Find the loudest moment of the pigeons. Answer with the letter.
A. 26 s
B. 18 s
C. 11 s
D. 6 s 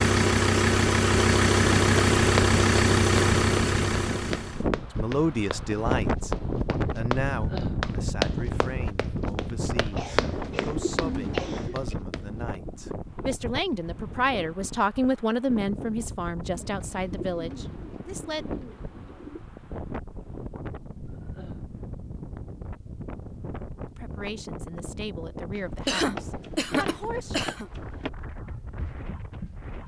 C.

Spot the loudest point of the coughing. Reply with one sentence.
The volume of the coughing peaks at 26 seconds.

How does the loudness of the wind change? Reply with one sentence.
The loudness of the wind goes down.